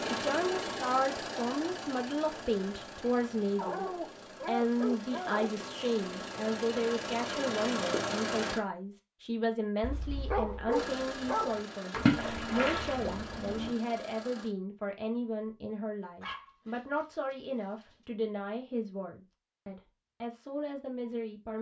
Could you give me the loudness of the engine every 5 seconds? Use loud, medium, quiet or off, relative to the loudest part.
loud, loud, medium, off, off.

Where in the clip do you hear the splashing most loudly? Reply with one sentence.
The loudest moment of the splashing is at 12 seconds.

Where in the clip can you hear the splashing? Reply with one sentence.
You can hear the splashing from 11.9 to 13.7 s.